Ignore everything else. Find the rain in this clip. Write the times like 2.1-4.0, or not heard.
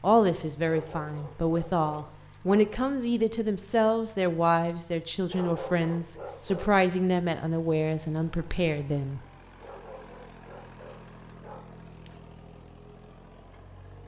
not heard.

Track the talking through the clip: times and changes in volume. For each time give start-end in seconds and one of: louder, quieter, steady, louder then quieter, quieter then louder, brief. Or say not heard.
0.0-9.2 steady.